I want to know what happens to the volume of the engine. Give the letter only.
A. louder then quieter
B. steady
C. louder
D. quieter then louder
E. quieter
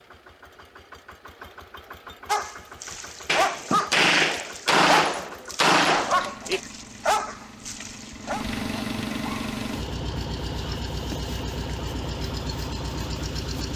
C.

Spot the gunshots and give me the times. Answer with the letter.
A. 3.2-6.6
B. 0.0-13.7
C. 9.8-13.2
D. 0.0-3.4
A.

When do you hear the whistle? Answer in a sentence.
The whistle can't be heard in this clip.